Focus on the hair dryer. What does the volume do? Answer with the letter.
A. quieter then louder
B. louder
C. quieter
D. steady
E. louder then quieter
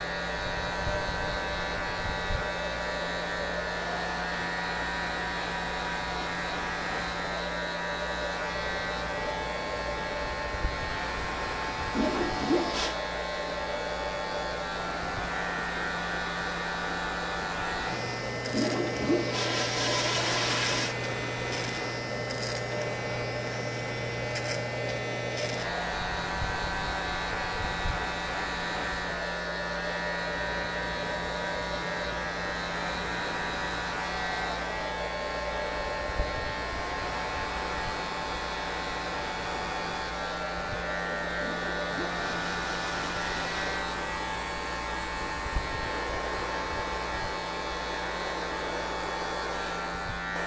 D.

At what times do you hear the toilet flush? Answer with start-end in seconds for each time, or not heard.
11.9-12.9, 18.5-20.9, 41.4-43.6.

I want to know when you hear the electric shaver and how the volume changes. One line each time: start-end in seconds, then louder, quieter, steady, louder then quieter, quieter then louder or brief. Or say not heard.
0.0-50.4 steady.